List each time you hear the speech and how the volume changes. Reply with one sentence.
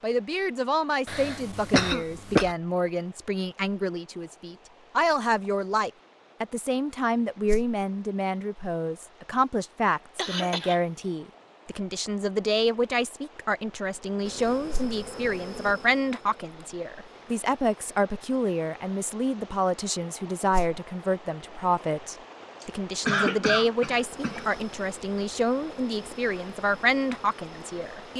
The speech can be heard from 0.0 to 28.1 s, at a steady volume.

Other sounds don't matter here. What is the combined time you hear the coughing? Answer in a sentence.
You can hear the coughing for 4 seconds altogether.